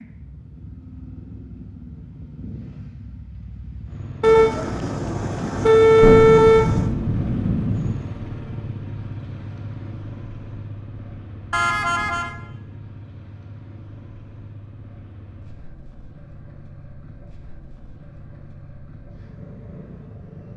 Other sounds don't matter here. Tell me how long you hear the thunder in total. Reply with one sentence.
You can hear the thunder for 2 seconds altogether.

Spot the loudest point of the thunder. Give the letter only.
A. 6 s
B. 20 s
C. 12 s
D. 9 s
A.